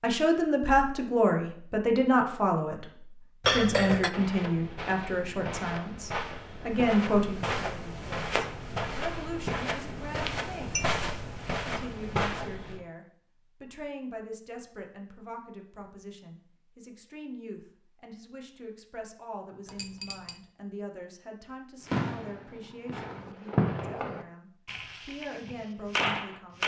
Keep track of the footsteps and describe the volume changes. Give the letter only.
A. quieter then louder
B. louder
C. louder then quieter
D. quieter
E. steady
B.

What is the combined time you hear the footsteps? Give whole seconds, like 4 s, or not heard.
9 s.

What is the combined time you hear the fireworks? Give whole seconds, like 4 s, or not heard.
5 s.